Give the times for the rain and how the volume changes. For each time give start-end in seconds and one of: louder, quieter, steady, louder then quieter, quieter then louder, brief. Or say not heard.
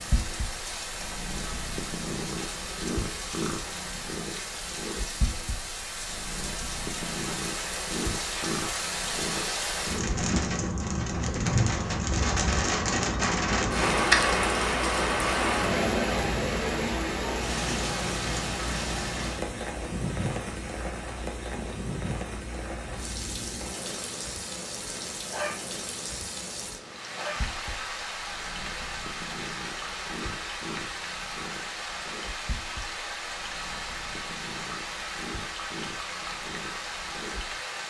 0.0-37.8 louder then quieter.